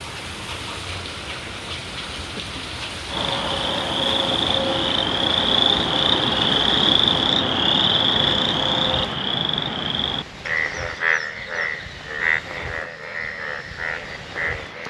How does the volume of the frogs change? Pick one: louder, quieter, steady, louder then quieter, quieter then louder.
quieter.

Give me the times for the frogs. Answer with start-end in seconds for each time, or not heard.
3.1-14.8.